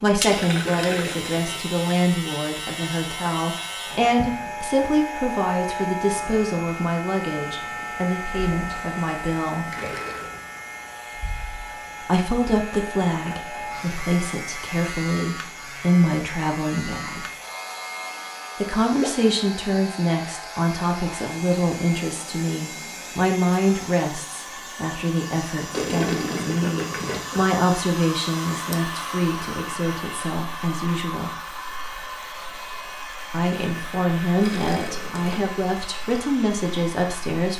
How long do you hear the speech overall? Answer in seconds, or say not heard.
32 s.